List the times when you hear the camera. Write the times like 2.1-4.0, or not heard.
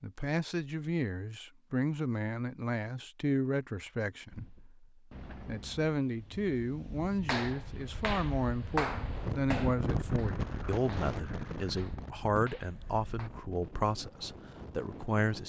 not heard.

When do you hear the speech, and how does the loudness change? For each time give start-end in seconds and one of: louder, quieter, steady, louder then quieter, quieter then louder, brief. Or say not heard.
0.0-15.4 steady.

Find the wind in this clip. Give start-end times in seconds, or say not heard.
4.3-15.4.